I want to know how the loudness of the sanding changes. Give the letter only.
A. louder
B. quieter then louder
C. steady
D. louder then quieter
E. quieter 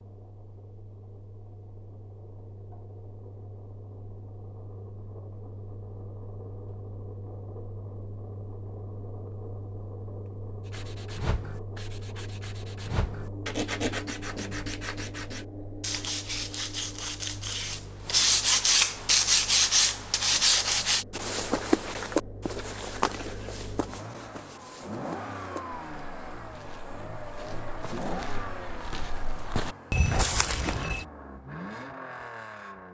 A.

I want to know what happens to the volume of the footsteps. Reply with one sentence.
The loudness of the footsteps goes down, then up.